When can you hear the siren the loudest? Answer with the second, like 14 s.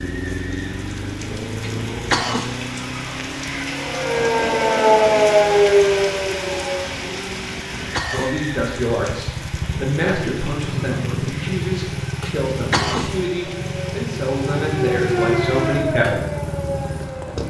5 s.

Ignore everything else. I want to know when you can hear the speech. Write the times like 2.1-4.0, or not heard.
8.1-16.2.